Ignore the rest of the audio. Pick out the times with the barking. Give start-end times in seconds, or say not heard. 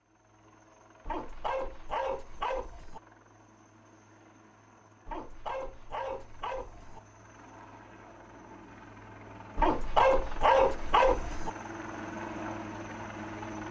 1.1-3.0, 5.0-7.0, 9.6-11.5.